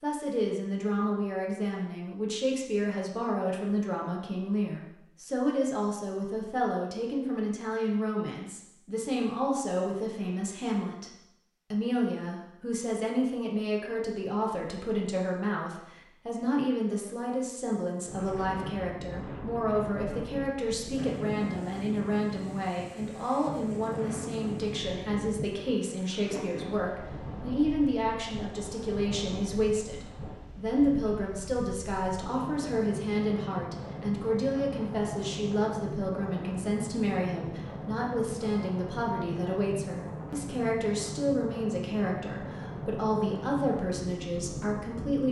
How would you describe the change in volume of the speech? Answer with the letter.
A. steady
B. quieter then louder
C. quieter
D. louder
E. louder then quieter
A.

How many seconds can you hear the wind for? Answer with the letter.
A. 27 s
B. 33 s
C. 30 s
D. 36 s
A.